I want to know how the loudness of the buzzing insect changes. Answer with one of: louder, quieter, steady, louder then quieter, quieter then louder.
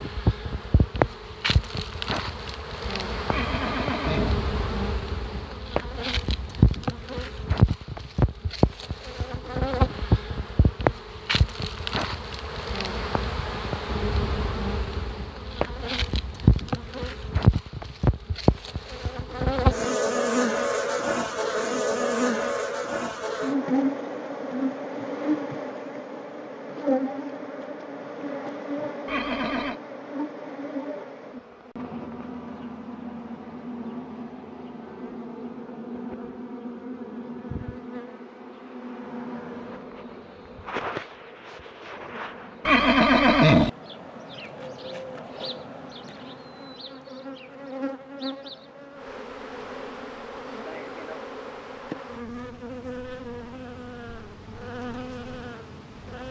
quieter.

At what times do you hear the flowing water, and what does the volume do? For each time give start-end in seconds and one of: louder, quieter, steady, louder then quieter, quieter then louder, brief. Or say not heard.
not heard.